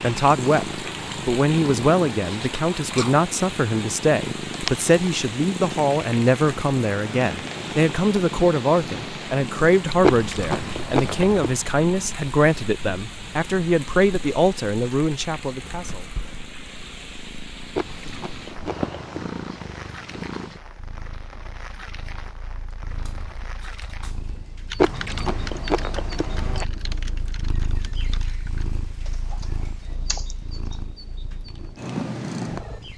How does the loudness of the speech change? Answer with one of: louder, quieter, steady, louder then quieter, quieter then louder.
steady.